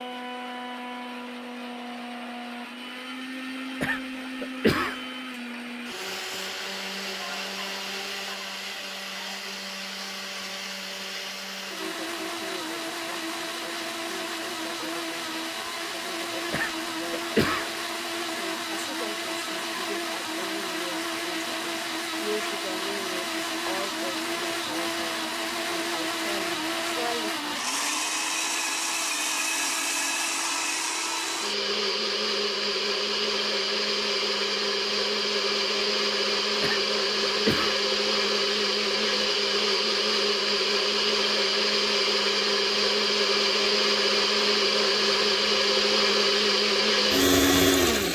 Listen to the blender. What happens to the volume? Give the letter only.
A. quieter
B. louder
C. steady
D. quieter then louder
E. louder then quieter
B.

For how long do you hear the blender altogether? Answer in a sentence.
You can hear the blender for 48 seconds altogether.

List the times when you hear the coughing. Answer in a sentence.
You can hear the coughing from 3.8 to 5.0 s, from 16.5 to 17.7 s and from 36.6 to 37.8 s.